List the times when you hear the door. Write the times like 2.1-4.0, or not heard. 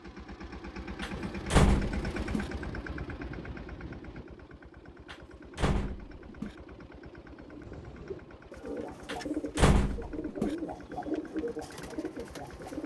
1.0-2.5, 5.1-6.5, 9.1-10.6.